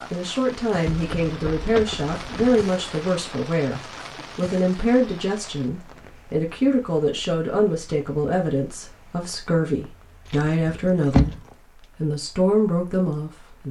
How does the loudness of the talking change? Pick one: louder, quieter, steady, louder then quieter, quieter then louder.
steady.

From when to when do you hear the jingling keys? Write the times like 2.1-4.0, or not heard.
0.8-2.6, 10.2-11.4.